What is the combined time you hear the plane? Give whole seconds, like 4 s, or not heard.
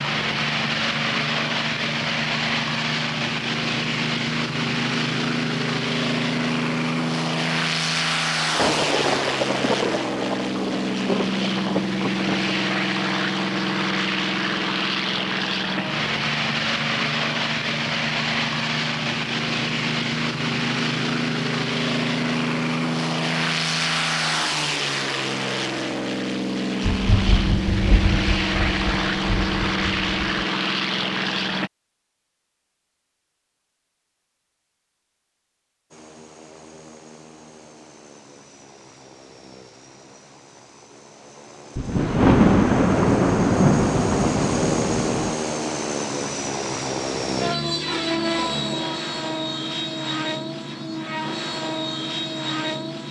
49 s.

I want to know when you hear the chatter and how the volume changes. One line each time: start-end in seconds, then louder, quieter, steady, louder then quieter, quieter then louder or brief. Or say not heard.
not heard.